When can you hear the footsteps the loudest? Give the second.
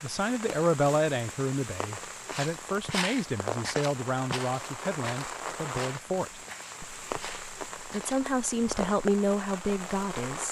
3 s.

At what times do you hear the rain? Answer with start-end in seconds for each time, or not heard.
0.0-10.4.